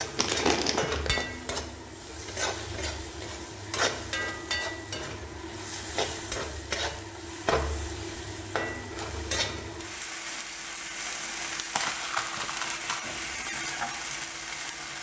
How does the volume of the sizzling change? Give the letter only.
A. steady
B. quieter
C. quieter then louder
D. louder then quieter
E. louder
A.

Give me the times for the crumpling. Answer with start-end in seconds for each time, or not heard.
0.1-1.3, 11.7-13.1.